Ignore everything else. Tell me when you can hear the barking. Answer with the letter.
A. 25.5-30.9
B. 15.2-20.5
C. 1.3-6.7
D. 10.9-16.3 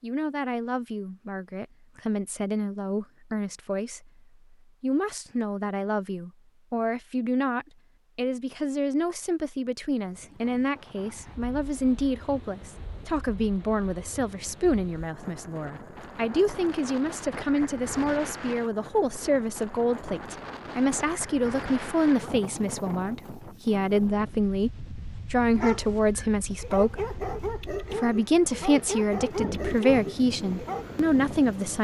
A.